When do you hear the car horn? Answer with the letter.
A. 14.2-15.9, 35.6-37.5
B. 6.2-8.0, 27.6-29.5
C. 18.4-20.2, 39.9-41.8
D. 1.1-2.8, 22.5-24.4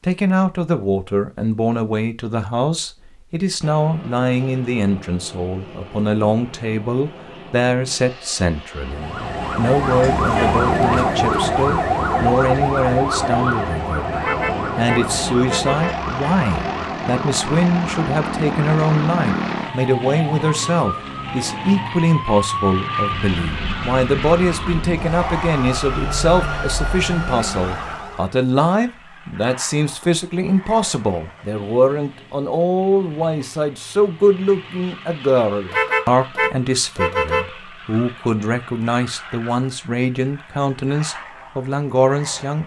A.